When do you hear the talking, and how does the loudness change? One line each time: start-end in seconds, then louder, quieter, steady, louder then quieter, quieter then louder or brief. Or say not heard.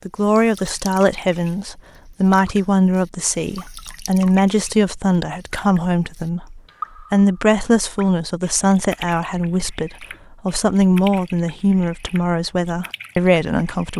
0.1-13.9 steady.